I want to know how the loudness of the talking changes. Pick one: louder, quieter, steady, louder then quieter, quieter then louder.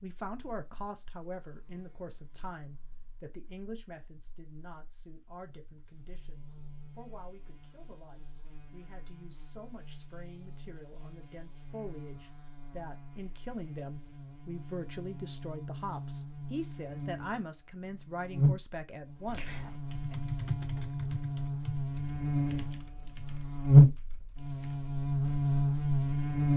quieter then louder.